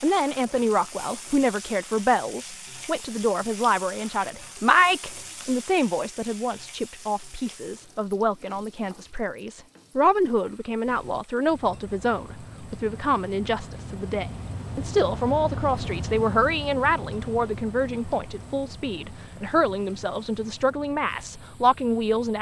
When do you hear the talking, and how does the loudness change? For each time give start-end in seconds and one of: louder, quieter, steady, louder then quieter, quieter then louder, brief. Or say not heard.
0.0-22.3 steady.